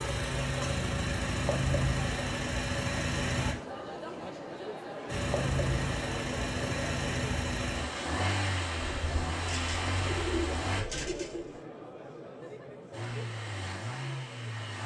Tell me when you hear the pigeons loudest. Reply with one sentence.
The loudest moment of the pigeons is at 10 seconds.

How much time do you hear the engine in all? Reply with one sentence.
You can hear the engine for 11 seconds altogether.